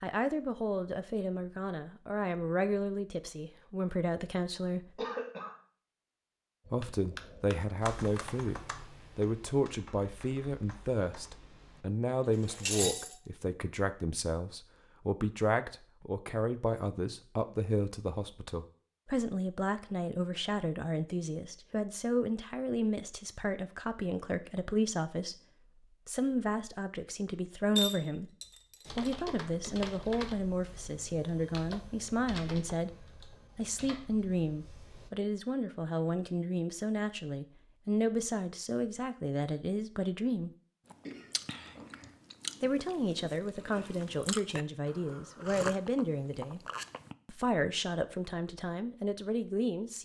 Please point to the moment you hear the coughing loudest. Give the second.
5 s.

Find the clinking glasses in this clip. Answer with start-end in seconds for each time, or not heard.
12.4-13.2, 27.8-29.1.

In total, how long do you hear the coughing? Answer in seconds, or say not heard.
2 s.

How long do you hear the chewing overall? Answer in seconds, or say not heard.
6 s.